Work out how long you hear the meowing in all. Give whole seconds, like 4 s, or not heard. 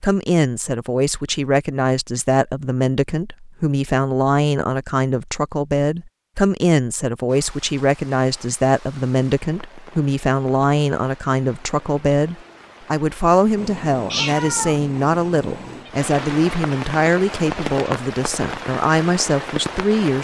2 s.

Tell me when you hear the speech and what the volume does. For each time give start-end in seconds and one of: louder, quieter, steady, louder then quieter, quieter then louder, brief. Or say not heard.
0.0-20.1 steady.